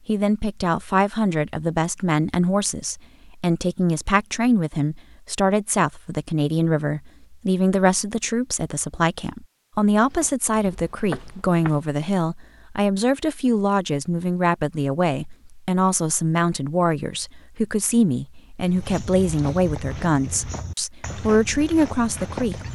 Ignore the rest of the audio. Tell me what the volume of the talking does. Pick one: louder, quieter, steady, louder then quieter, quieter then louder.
steady.